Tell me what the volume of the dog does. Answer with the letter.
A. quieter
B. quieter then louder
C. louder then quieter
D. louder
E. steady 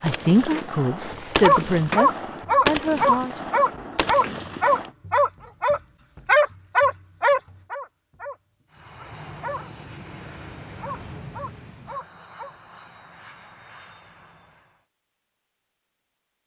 A.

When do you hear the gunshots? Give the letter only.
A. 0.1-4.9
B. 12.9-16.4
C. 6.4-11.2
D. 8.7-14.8
A.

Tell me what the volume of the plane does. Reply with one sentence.
The loudness of the plane goes down.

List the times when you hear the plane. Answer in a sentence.
The plane can be heard from 8.7 to 14.8 s.